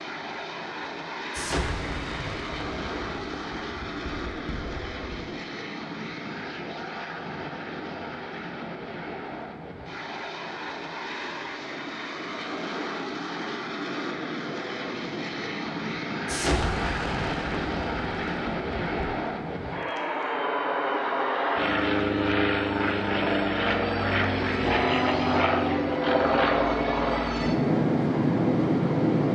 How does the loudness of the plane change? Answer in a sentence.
The volume of the plane goes up.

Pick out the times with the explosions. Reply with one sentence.
You can hear the explosions from 1.3 to 5.2 s and from 16.2 to 19.1 s.